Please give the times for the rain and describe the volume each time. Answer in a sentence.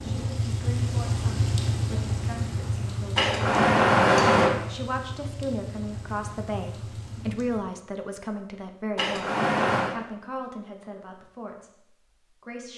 You can hear the rain from 0.0 to 7.8 s, getting quieter.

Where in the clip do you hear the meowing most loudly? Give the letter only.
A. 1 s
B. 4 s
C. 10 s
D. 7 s
B.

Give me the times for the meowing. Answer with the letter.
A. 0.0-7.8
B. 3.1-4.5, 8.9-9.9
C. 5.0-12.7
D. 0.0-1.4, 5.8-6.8
B.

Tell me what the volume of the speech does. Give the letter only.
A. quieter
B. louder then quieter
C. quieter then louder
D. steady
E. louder
B.